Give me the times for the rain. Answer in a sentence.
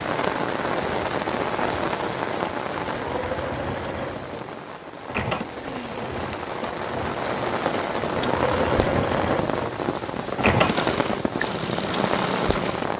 You can hear the rain from 0.0 to 12.9 s.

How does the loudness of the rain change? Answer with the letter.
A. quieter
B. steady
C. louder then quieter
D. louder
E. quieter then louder
E.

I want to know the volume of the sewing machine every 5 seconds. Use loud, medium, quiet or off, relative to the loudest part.
medium, loud, loud.